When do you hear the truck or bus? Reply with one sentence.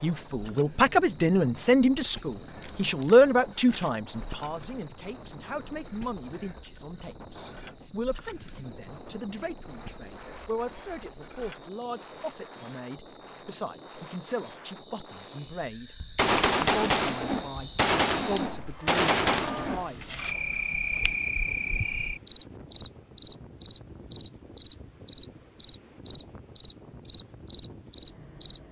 The truck or bus can't be heard in this clip.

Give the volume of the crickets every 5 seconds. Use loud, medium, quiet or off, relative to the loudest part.
quiet, quiet, quiet, medium, medium, loud.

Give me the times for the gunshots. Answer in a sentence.
The gunshots can be heard from 1.9 to 3.9 s and from 16.0 to 19.9 s.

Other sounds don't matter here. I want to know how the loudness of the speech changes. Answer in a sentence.
The volume of the speech goes down.